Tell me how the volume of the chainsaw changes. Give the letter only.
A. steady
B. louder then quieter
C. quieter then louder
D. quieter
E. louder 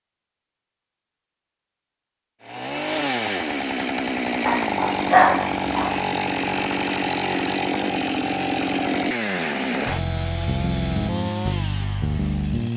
A.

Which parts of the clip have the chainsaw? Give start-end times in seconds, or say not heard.
2.4-12.7.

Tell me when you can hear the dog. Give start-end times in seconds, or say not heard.
4.5-6.0.